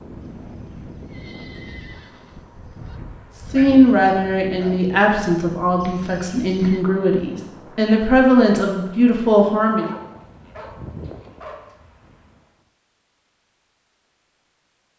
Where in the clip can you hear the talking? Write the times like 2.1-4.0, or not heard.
3.5-9.9.